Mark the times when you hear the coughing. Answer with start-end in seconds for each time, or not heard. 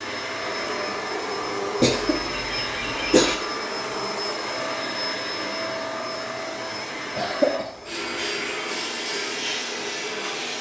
1.8-3.4, 7.2-7.7.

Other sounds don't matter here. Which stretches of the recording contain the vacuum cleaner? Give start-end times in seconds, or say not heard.
0.0-10.5.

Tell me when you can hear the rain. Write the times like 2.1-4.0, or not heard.
not heard.